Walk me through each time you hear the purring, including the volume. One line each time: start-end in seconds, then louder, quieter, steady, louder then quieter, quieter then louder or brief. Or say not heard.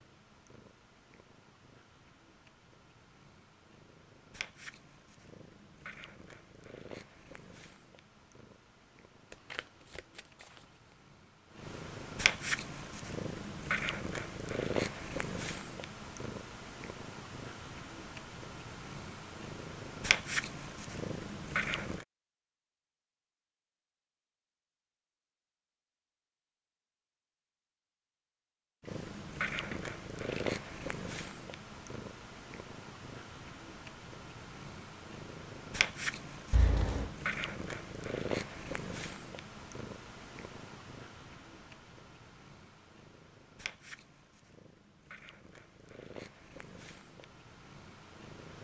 0.0-22.1 louder
28.8-48.5 quieter.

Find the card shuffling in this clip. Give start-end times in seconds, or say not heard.
9.3-10.4, 29.7-30.6, 36.5-37.1.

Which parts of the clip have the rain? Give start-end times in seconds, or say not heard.
not heard.